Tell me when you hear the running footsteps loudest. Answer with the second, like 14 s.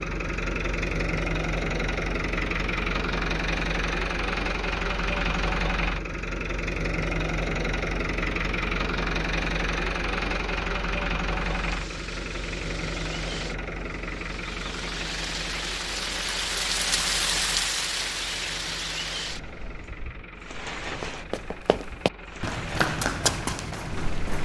23 s.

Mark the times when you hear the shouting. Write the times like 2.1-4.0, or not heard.
not heard.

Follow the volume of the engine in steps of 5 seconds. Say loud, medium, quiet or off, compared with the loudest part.
loud, loud, loud, medium, quiet.